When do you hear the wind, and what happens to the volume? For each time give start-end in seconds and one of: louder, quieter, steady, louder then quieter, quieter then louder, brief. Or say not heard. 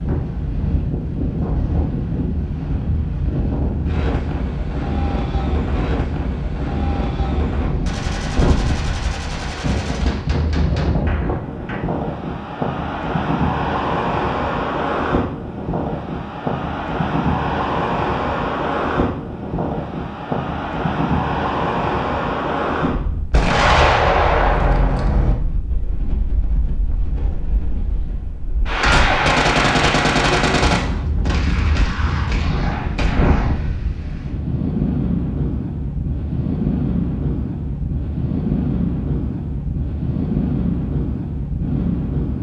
0.0-42.3 steady.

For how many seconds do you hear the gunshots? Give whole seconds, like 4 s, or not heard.
11 s.